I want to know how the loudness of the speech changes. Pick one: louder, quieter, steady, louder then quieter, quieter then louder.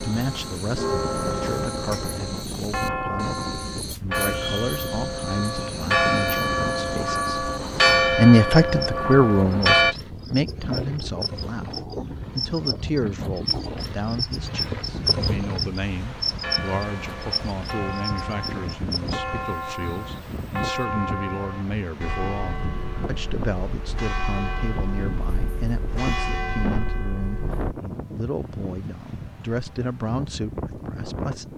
louder then quieter.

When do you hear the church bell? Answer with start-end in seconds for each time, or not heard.
0.0-9.9, 16.3-27.7.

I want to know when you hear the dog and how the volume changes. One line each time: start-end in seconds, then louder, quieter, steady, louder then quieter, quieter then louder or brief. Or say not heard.
not heard.